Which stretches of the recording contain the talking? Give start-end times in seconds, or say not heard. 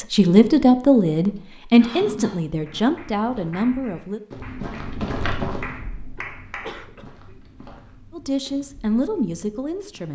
0.0-4.2, 8.1-10.1.